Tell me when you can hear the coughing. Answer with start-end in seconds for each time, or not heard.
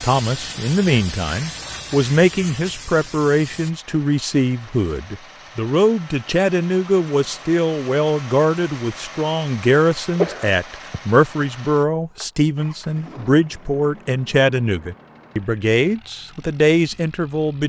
10.2-11.0.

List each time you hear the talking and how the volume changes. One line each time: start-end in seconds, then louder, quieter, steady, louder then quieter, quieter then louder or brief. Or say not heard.
0.0-17.6 steady.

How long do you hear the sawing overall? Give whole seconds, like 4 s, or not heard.
not heard.